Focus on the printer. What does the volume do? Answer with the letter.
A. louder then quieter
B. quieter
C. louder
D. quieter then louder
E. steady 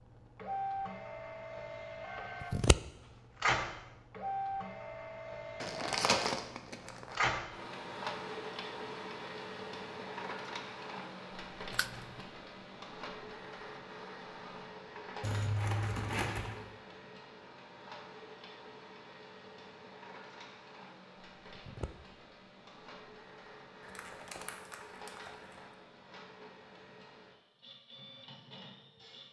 B.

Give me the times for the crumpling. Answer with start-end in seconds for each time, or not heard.
5.6-7.2, 15.2-16.6, 23.9-25.6.